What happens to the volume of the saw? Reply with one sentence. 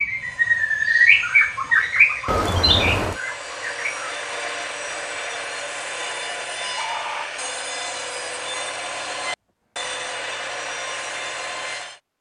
The volume of the saw goes up.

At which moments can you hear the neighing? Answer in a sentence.
You can hear the neighing from 2.2 to 3.2 s.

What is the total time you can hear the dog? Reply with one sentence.
You can't hear the dog here.